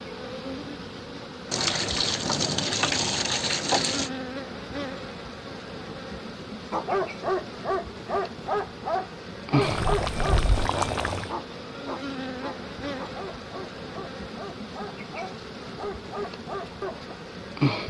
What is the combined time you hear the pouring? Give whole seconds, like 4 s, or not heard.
4 s.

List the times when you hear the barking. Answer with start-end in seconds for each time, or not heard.
6.7-17.1.